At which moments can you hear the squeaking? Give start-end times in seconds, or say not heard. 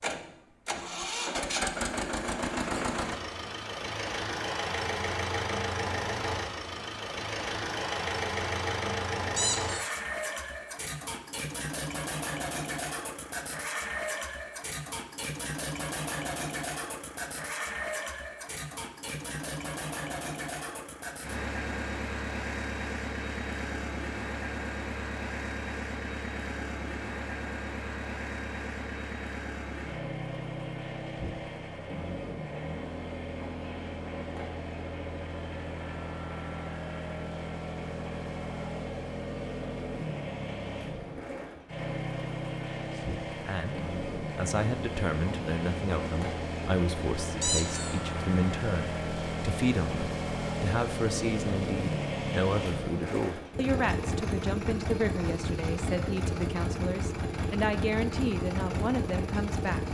9.3-9.9, 47.4-48.0.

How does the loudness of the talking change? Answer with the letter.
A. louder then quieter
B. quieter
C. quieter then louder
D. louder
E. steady
E.